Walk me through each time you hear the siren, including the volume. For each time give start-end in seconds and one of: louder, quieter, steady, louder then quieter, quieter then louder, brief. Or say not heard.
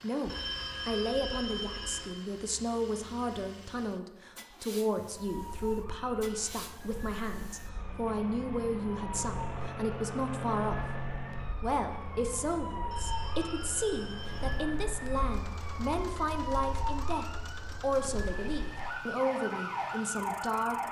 5.0-20.8 louder.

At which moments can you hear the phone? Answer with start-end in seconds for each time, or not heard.
0.2-2.1, 12.8-14.7.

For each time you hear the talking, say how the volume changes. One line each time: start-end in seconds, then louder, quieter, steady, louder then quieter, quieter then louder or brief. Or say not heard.
0.0-10.9 steady
11.6-20.8 steady.